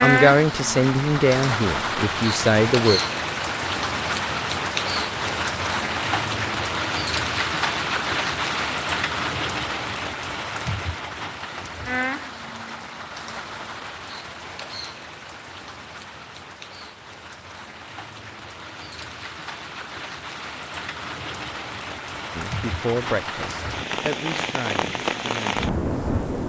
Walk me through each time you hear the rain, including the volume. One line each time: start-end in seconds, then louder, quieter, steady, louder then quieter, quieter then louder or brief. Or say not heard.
0.0-26.4 quieter then louder.